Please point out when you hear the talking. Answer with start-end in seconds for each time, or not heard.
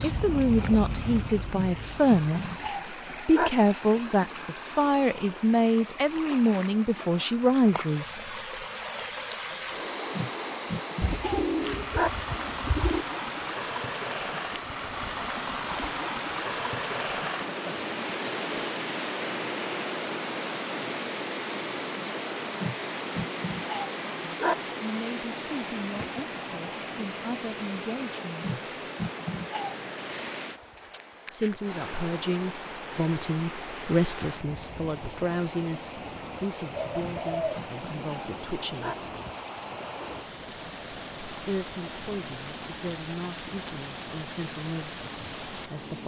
0.0-8.2, 24.2-28.9, 31.3-39.1, 41.2-46.0.